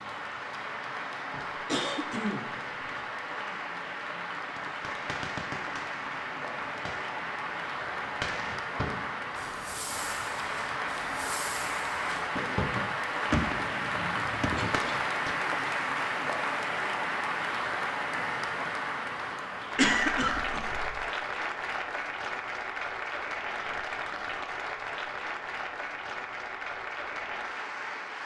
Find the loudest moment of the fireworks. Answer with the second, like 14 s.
13 s.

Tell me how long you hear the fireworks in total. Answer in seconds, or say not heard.
11 s.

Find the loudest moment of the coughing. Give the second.
20 s.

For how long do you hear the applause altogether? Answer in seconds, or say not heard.
28 s.